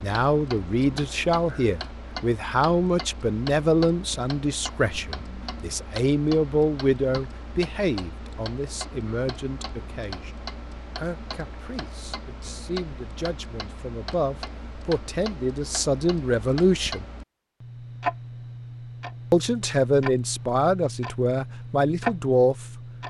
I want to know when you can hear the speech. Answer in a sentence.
You can hear the speech from 0.0 to 17.1 s and from 19.3 to 22.6 s.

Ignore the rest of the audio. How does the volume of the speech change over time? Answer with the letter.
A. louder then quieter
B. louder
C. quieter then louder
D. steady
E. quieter
C.